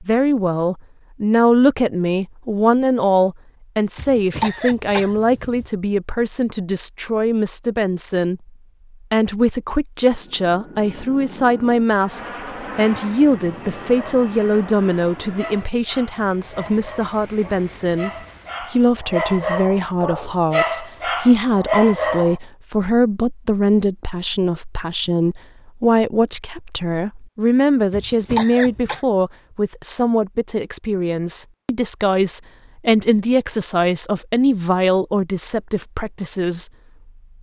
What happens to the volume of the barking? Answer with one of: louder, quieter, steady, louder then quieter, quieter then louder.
louder.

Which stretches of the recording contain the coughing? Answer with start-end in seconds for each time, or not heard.
4.0-5.7, 27.9-29.0.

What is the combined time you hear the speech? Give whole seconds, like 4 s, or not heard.
36 s.